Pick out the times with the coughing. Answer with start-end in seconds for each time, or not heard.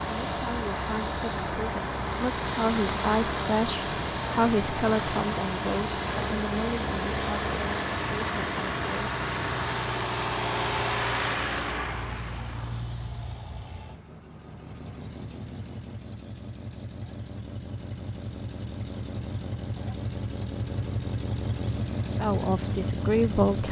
not heard.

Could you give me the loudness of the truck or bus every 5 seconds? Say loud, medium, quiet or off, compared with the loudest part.
loud, loud, loud, medium, loud.